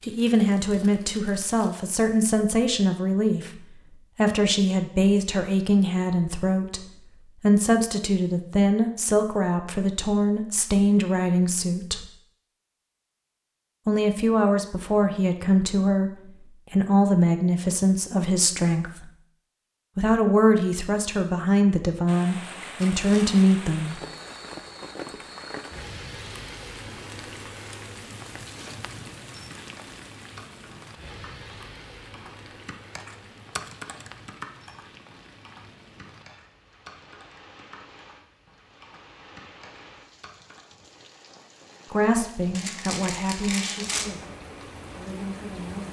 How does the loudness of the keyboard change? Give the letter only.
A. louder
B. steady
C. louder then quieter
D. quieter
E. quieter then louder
C.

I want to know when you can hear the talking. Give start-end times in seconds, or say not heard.
0.0-12.1, 13.8-19.1, 19.9-24.0, 41.9-45.8.